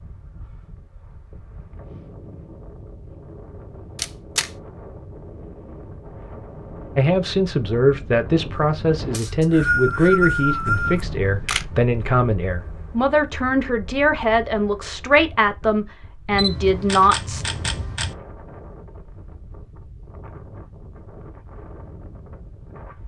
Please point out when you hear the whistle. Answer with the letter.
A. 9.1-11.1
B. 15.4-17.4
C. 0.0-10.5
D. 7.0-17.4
A.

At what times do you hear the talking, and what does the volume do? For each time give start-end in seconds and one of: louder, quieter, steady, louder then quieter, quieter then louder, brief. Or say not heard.
7.0-17.4 steady.